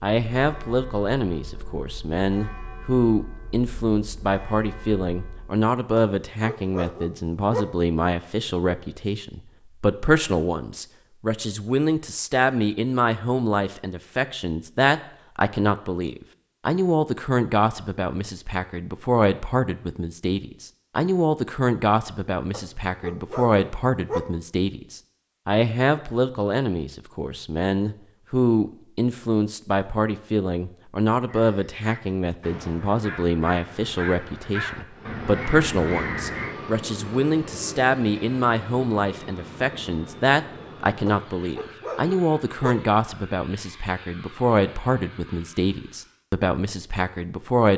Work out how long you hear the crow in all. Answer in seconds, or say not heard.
5 s.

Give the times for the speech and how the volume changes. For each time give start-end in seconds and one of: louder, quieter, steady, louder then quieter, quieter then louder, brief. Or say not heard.
0.0-47.7 steady.